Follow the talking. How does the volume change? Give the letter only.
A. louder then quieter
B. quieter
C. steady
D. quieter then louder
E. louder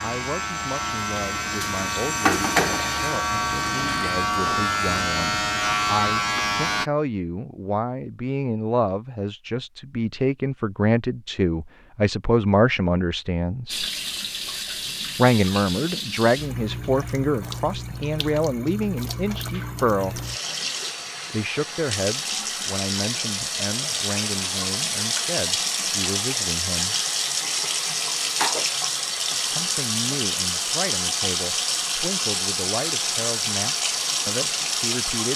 A.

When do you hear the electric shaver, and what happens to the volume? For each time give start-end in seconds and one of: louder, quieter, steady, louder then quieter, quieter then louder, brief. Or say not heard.
0.0-6.9 louder.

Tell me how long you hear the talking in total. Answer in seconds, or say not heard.
30 s.